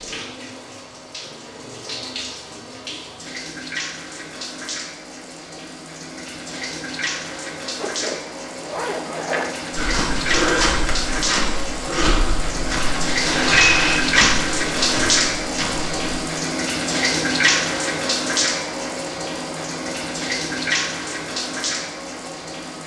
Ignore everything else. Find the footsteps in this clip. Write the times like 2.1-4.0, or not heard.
9.8-16.2.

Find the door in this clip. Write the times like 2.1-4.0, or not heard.
not heard.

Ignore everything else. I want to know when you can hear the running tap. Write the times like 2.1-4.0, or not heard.
0.0-22.8.